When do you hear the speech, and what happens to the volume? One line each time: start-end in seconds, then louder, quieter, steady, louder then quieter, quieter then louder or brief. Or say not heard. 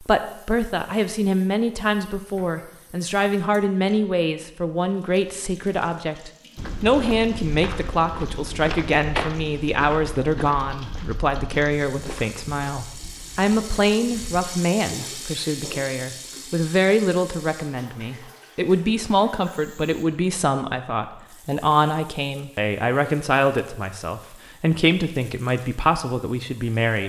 0.0-27.0 steady.